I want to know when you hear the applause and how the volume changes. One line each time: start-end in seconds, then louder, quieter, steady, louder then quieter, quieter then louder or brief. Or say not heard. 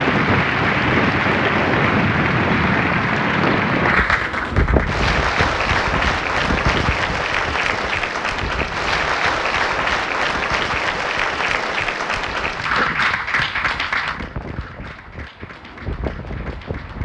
0.0-17.0 quieter.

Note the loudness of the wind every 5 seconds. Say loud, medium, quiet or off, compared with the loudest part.
loud, medium, quiet, quiet.